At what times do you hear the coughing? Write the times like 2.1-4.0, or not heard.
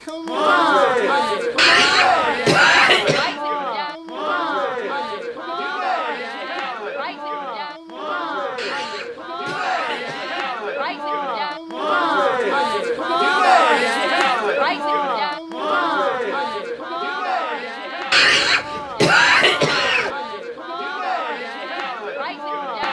1.6-3.4, 8.6-10.4, 18.1-20.1.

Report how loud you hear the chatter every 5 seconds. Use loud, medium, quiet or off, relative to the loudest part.
loud, medium, loud, medium, medium.